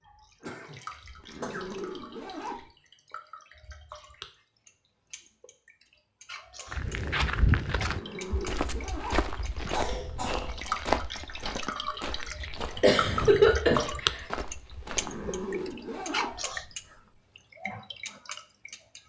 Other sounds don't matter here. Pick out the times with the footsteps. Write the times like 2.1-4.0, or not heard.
6.7-15.7.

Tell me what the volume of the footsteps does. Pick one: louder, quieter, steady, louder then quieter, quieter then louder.
quieter.